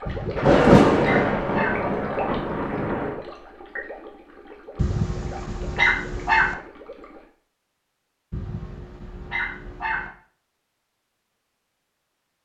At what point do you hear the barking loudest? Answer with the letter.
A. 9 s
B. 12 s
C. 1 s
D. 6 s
D.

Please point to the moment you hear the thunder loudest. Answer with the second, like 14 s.
1 s.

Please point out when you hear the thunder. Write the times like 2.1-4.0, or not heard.
0.3-3.1.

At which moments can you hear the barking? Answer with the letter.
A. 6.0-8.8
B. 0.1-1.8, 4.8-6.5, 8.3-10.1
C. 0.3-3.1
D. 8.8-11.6
B.